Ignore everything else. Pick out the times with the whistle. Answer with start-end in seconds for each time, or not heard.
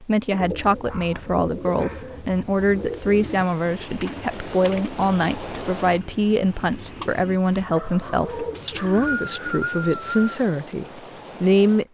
8.6-10.2.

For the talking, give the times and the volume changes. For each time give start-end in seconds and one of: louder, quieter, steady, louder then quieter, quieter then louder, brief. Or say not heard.
0.0-11.8 steady.